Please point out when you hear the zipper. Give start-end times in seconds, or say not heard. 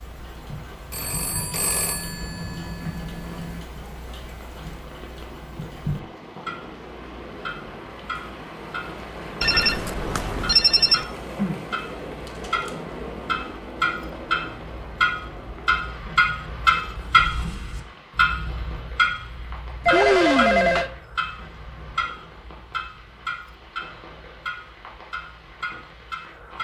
not heard.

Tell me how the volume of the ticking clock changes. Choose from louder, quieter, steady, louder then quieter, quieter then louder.
louder then quieter.